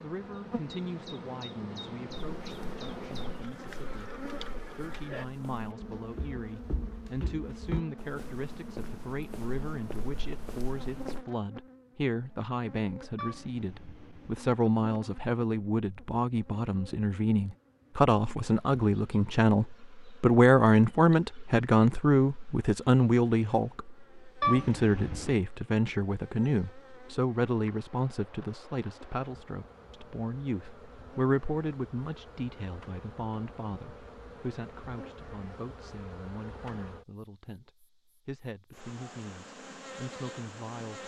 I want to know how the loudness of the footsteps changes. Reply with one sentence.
The volume of the footsteps goes up, then down.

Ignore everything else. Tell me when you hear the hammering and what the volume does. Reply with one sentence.
You can't hear the hammering here.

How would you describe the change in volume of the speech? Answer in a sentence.
The volume of the speech goes up, then down.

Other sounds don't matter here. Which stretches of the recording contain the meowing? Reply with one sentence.
You can hear the meowing from 13.2 to 14.4 s and from 24.4 to 25.4 s.